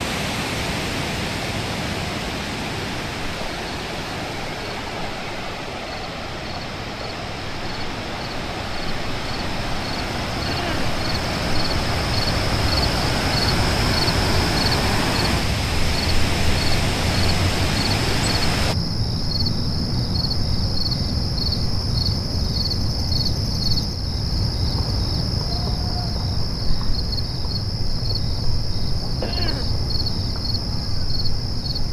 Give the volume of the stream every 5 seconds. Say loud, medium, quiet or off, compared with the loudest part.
loud, medium, loud, loud, off, off, off.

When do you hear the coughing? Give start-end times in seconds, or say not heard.
10.4-10.9, 29.2-29.8.